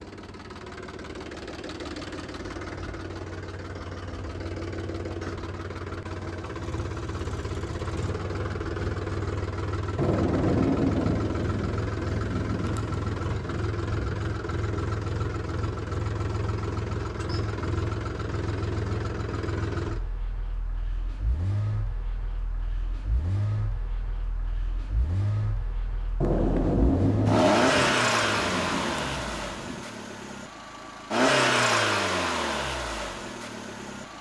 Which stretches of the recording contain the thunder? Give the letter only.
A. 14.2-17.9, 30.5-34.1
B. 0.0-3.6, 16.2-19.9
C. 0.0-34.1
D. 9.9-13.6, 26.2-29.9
D.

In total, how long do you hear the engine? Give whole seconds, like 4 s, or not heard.
34 s.